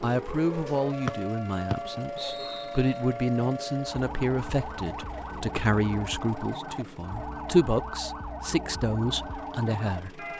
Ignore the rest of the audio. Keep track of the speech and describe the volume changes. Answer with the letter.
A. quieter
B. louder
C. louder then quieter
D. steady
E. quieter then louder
D.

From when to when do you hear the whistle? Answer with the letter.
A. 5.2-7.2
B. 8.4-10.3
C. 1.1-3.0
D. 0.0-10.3
C.